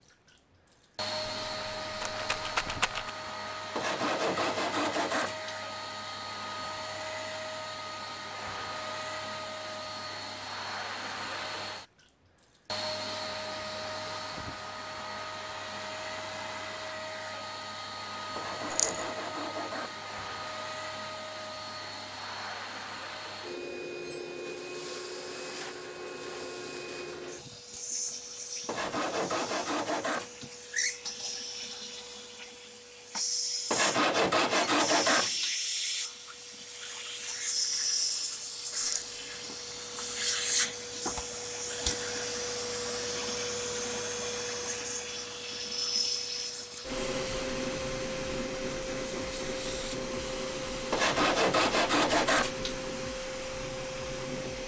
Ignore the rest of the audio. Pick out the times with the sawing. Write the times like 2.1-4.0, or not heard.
3.8-5.5, 18.4-20.0, 28.6-30.4, 33.7-35.5, 50.9-52.8.